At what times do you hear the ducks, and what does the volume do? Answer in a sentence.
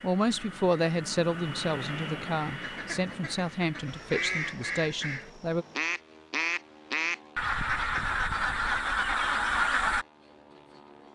The ducks can be heard from 2.6 to 10.1 s, getting louder.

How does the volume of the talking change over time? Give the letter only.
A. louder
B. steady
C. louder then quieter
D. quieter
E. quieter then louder
D.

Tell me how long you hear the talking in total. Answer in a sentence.
The talking can be heard for 6 seconds in total.